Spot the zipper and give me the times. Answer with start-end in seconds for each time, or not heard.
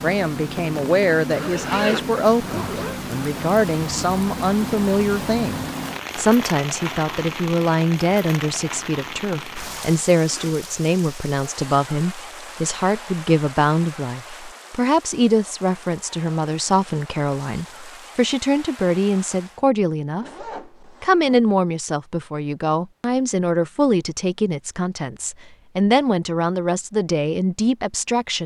1.2-3.0, 10.2-10.7, 20.2-21.4.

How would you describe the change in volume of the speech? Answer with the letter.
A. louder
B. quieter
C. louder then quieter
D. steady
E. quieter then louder
D.